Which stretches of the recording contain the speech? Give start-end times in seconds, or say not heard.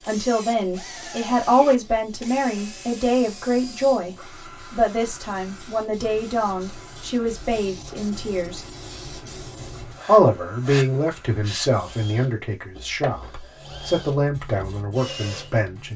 0.1-8.7, 10.1-15.9.